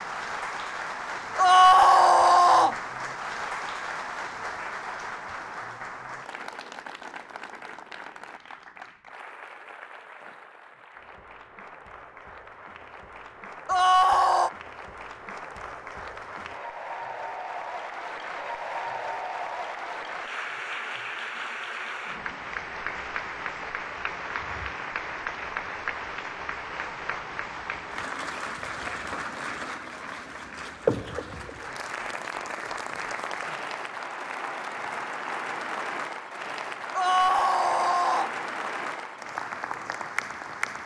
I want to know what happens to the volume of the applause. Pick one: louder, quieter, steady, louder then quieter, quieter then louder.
quieter then louder.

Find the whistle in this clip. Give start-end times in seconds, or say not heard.
not heard.